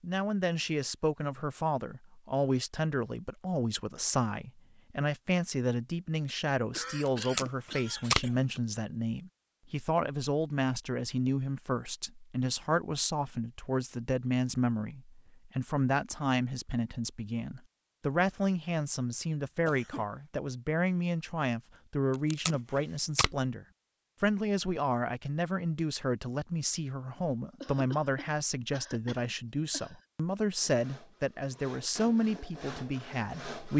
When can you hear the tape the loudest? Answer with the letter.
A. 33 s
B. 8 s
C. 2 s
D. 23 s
B.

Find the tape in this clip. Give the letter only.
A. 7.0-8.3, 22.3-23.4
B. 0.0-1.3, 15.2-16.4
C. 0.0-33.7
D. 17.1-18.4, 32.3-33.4
A.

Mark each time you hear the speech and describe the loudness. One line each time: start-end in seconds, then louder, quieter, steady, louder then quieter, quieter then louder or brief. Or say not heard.
0.0-33.7 steady.